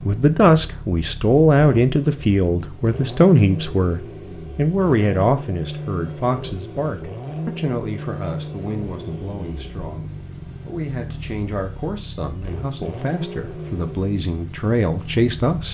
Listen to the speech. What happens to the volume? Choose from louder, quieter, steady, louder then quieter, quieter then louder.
quieter then louder.